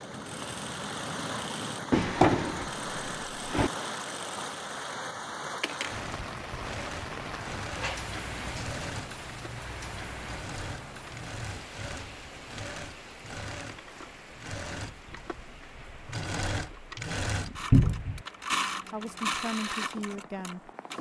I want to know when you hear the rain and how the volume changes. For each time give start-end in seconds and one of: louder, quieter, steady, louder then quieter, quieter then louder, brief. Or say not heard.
0.0-20.9 quieter.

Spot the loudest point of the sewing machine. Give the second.
19 s.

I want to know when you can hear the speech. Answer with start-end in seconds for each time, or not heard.
18.9-20.7.